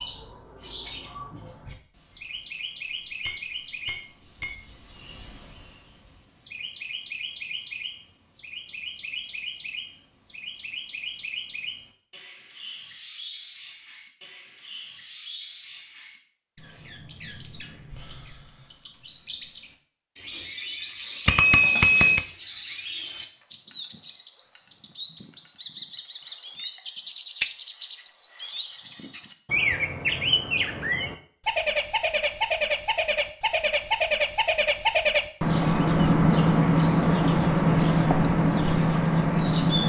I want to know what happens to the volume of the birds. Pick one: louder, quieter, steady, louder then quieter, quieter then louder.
louder.